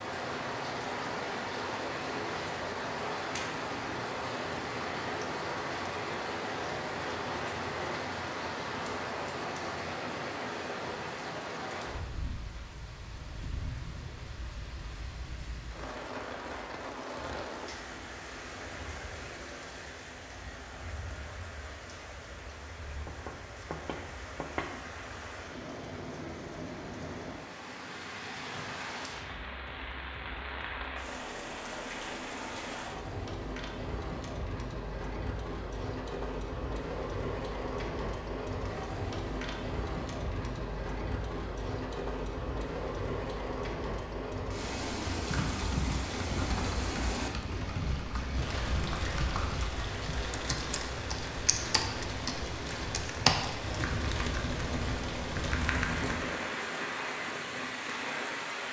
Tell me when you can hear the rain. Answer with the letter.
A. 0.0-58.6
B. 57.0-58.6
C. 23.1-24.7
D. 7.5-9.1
A.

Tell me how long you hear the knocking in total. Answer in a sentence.
The knocking can be heard for 2 seconds in total.